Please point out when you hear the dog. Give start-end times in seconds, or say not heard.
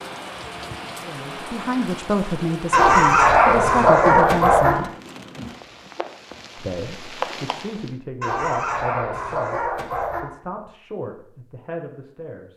2.7-4.8, 8.2-10.2.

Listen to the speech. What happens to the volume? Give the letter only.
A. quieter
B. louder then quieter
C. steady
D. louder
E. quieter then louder
A.